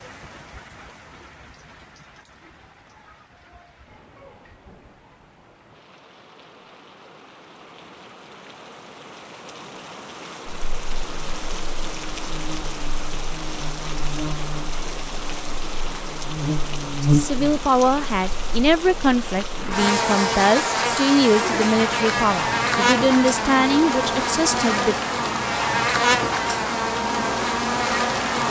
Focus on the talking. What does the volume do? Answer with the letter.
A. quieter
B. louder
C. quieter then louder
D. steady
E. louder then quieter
D.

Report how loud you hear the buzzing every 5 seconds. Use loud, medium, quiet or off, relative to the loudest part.
off, off, quiet, loud, loud, loud.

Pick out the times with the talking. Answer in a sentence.
The talking can be heard from 17.0 to 24.9 s.